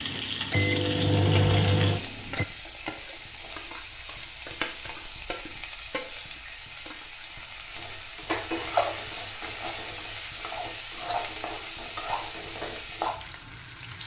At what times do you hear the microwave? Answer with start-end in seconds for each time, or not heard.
0.0-2.5.